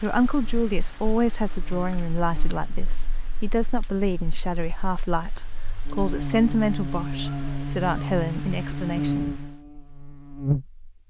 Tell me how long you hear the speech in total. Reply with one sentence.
You can hear the speech for 9 seconds altogether.